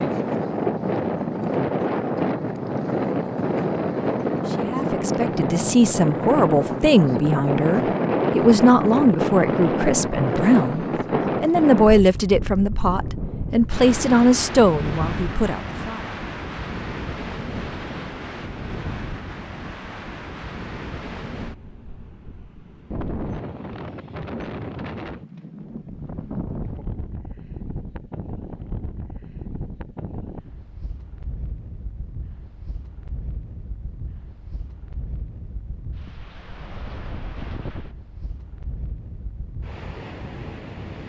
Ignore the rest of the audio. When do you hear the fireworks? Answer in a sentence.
The fireworks can't be heard in this clip.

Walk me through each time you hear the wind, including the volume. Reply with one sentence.
The wind can be heard from 0.0 to 41.0 s, getting quieter.